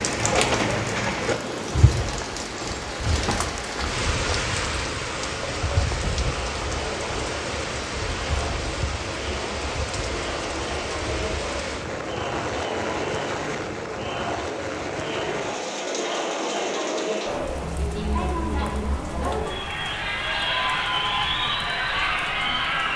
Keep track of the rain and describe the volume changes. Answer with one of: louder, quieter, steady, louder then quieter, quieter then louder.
quieter.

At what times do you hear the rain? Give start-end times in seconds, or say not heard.
0.0-22.9.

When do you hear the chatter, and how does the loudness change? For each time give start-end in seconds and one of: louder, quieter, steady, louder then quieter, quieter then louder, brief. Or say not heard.
5.2-22.9 louder.